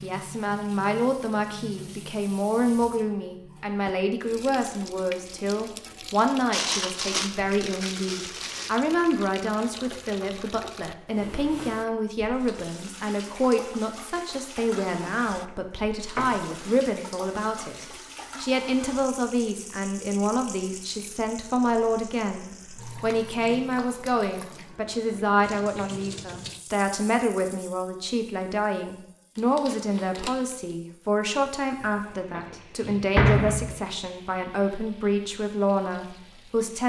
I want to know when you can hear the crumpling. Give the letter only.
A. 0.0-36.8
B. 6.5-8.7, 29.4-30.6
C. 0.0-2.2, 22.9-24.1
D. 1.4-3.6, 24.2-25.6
B.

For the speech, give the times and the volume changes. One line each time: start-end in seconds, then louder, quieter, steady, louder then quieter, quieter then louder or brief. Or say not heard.
0.0-36.8 steady.